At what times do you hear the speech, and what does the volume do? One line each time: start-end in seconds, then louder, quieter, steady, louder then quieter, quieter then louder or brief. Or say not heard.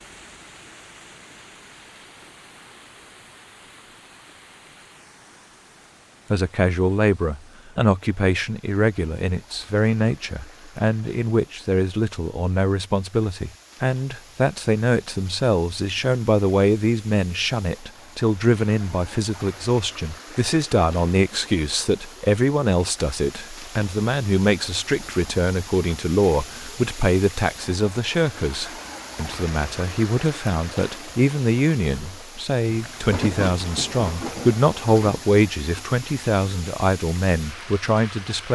6.3-38.5 steady.